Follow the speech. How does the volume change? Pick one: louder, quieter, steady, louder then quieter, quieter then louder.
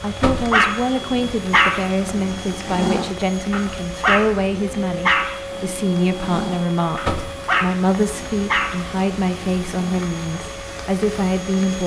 steady.